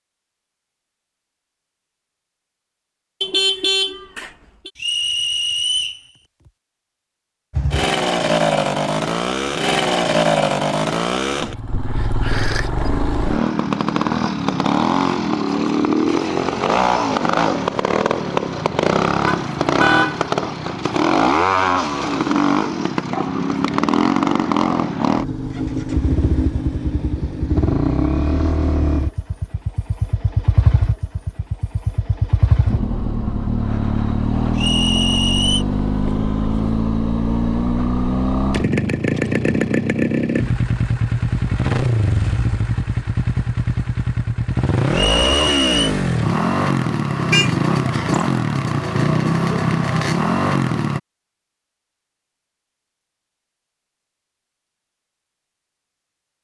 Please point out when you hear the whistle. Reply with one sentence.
The whistle can be heard from 4.8 to 6.0 s, from 34.5 to 35.6 s and from 44.9 to 45.9 s.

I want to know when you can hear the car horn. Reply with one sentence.
You can hear the car horn from 3.2 to 4.7 s, from 19.2 to 20.2 s and from 47.3 to 48.1 s.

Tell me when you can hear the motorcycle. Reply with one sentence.
The motorcycle can be heard from 7.5 to 51.0 s.